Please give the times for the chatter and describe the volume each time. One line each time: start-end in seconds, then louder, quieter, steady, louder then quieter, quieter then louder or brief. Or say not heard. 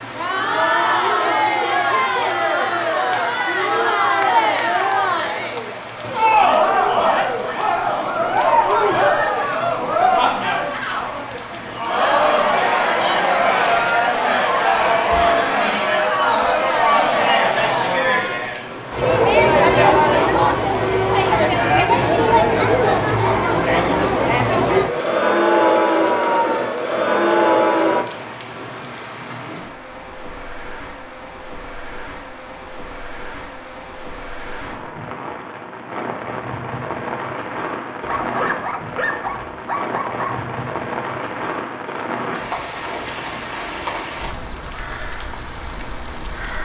0.0-28.1 steady.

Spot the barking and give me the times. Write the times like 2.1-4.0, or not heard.
19.0-20.4, 38.0-40.5.